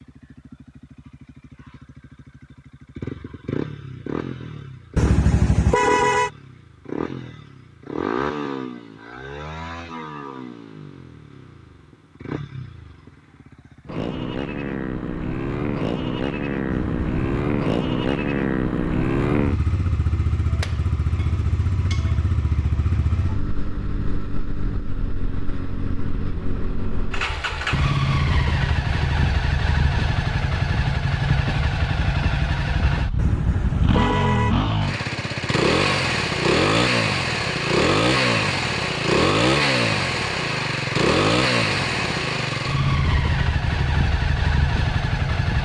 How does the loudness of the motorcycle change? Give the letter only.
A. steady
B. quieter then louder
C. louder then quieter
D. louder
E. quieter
D.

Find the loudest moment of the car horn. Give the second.
6 s.